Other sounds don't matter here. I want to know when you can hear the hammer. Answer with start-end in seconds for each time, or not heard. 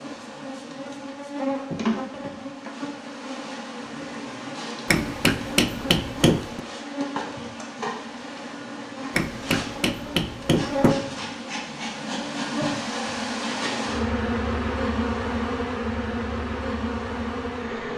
4.8-6.6, 9.1-10.9.